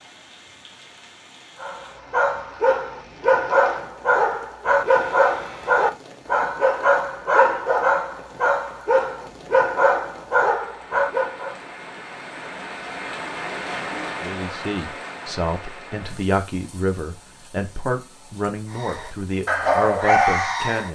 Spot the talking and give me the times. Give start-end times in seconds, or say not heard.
14.2-20.9.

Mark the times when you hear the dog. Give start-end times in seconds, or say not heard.
1.6-11.6, 18.8-20.9.